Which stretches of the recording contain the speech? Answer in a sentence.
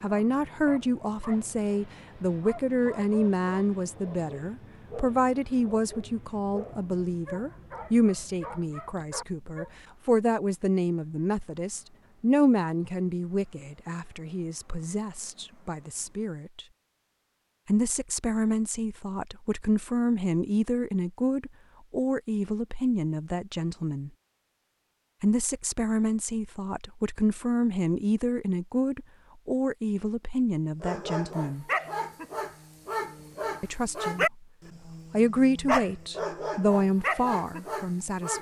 You can hear the speech from 0.0 to 16.6 s, from 17.6 to 24.1 s, from 25.2 to 31.6 s, from 33.6 to 34.5 s and from 35.1 to 38.3 s.